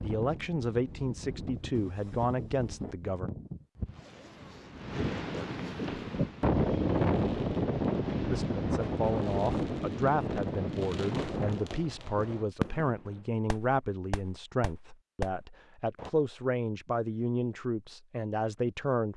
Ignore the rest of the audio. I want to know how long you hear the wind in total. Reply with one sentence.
You can hear the wind for 12 seconds altogether.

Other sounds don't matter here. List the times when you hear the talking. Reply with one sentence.
You can hear the talking from 0.0 to 3.3 s and from 8.3 to 19.1 s.